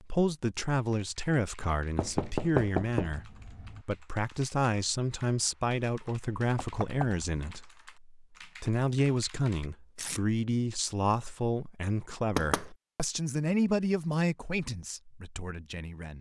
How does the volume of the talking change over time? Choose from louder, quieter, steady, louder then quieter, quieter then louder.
steady.